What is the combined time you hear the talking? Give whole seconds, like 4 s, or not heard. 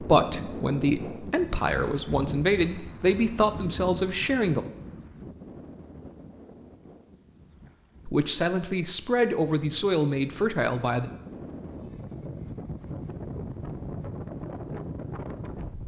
8 s.